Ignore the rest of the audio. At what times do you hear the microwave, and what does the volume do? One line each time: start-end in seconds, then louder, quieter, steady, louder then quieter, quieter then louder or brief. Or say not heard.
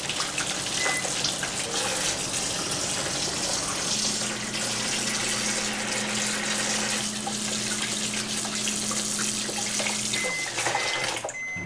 0.0-11.6 steady.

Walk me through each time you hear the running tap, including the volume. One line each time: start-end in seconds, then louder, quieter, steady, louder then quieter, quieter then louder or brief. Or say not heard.
0.0-11.6 steady.